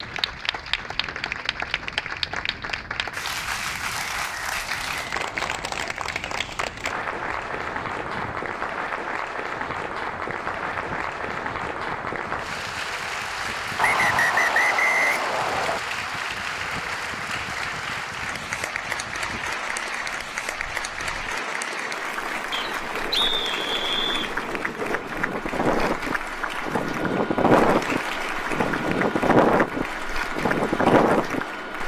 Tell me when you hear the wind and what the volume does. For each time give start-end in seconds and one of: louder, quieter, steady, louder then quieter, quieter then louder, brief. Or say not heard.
0.0-31.8 louder.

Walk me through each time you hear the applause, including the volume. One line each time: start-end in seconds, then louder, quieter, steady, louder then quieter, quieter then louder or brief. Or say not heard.
0.0-31.8 steady.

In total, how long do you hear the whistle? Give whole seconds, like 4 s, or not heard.
6 s.